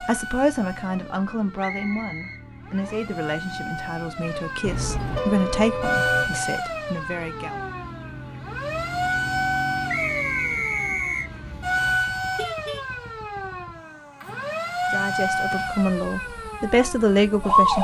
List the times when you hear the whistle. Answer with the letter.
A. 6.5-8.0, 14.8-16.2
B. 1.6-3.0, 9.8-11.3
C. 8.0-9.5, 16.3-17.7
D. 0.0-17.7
B.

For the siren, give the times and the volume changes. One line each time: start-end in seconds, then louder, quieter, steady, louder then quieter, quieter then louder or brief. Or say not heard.
0.0-17.7 louder.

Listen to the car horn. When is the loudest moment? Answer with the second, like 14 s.
5 s.